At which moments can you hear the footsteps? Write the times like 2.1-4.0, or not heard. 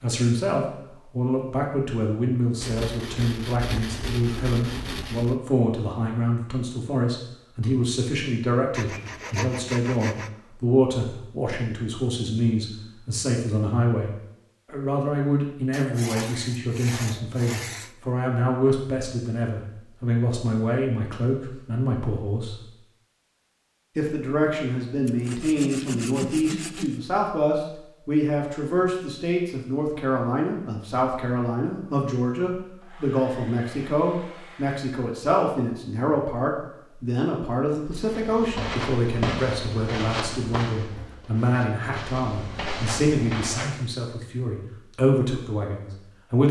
38.0-43.8.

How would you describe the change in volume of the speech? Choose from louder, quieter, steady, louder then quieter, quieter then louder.
steady.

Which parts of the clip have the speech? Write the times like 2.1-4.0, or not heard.
0.0-22.6, 23.9-46.4.